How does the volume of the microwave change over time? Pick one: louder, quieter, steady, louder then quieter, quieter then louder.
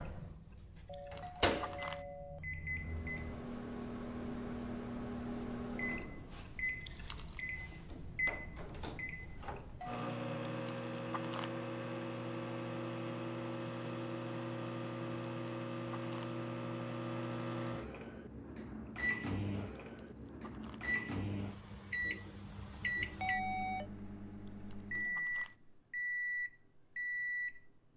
steady.